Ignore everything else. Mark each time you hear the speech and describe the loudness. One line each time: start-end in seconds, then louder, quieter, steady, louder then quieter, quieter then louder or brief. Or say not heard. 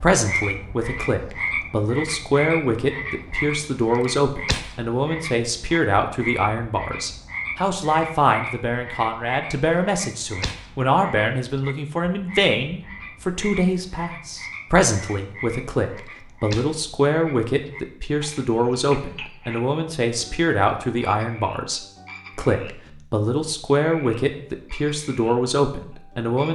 0.0-26.5 steady.